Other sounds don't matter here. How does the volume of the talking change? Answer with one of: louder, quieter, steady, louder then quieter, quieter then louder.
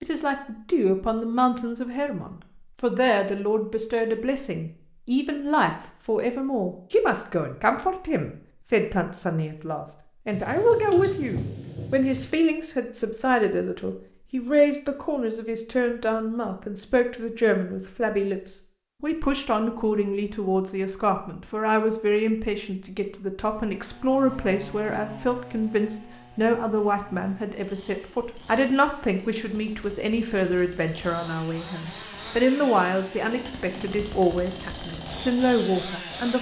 steady.